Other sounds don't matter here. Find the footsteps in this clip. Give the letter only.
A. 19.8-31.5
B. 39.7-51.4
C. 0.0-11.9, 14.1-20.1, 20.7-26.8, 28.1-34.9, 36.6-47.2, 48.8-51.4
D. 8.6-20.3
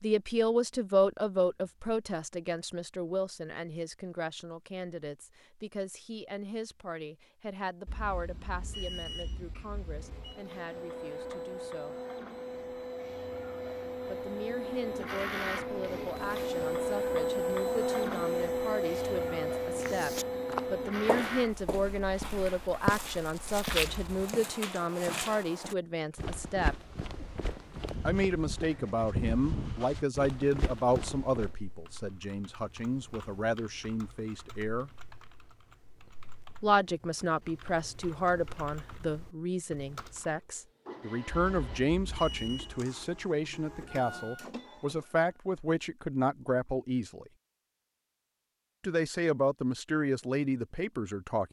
A.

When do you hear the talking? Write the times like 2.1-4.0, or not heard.
0.0-11.9, 14.1-20.1, 20.7-26.8, 28.1-34.9, 36.6-47.2, 48.8-51.4.